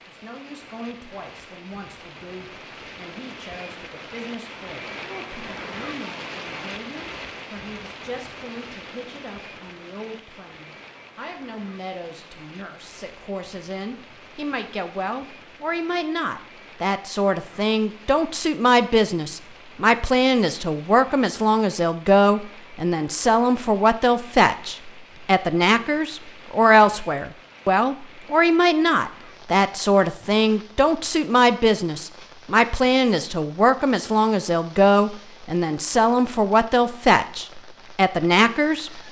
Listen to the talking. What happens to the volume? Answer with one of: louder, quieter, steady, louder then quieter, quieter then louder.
louder.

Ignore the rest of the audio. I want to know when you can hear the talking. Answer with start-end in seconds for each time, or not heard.
0.1-39.0.